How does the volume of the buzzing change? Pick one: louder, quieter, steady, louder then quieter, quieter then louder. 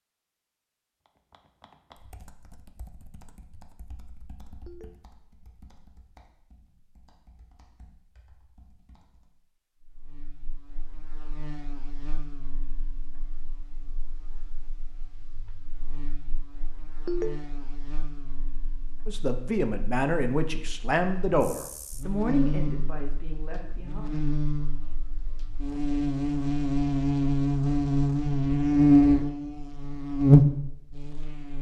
louder.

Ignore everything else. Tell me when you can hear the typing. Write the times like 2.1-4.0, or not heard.
1.3-9.4.